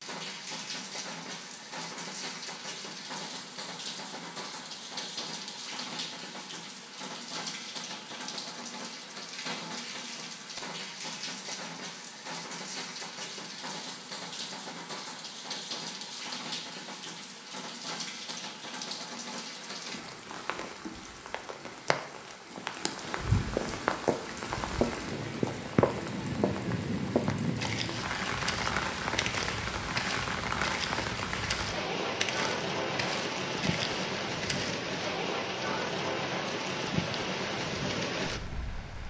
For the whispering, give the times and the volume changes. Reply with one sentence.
You can't hear the whispering here.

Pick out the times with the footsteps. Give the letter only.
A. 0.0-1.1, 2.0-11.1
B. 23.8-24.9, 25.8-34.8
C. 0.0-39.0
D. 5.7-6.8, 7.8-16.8
B.